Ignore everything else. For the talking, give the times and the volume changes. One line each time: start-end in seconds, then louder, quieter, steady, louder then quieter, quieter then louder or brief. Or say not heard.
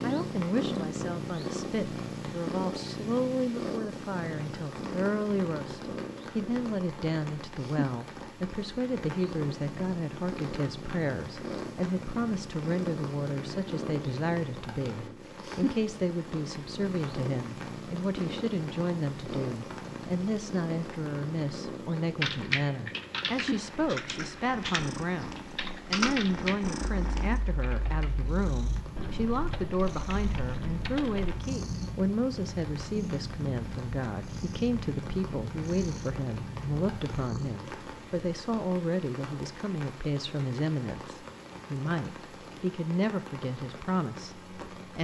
0.0-44.9 steady.